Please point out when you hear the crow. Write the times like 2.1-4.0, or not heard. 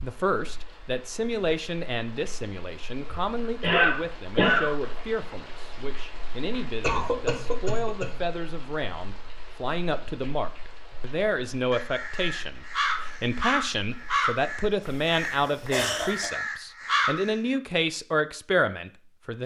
11.7-17.4.